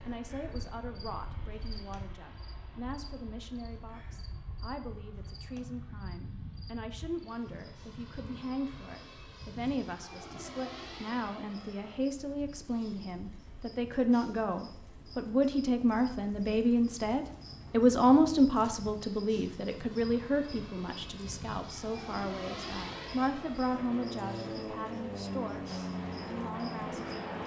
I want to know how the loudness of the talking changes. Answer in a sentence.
The loudness of the talking goes up, then down.